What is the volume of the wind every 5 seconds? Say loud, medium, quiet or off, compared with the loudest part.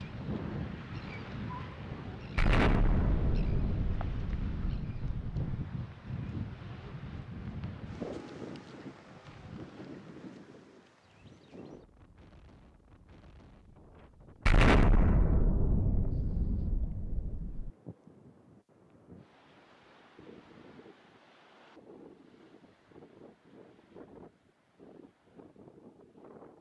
loud, loud, quiet, quiet, quiet, quiet.